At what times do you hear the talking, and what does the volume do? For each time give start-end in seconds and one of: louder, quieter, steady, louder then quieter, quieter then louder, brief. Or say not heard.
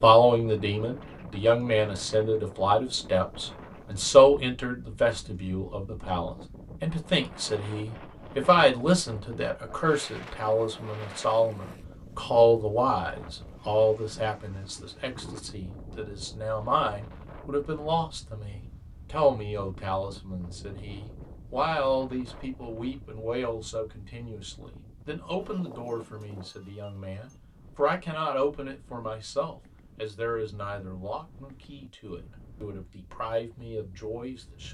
0.0-34.7 quieter.